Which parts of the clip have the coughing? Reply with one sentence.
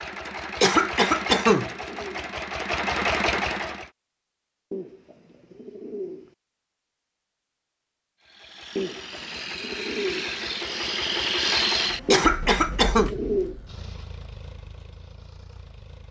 The coughing can be heard from 0.6 to 1.7 s and from 12.1 to 13.1 s.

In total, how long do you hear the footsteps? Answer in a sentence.
The footsteps can't be heard in this clip.